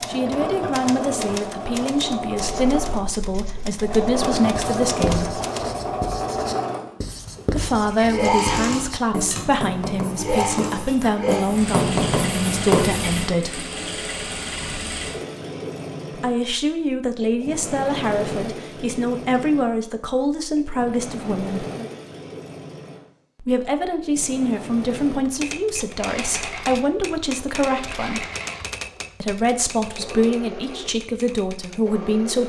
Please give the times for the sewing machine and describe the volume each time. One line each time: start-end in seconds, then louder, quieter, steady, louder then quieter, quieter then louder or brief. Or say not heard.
0.0-32.4 quieter.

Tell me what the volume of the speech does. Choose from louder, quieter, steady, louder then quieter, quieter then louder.
steady.